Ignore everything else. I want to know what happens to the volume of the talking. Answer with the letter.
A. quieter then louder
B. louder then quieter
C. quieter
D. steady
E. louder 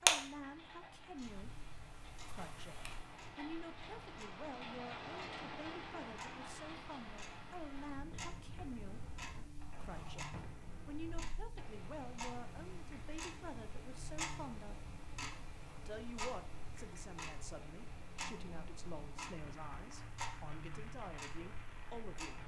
D.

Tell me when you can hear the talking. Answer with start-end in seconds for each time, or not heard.
0.0-14.9, 15.8-22.4.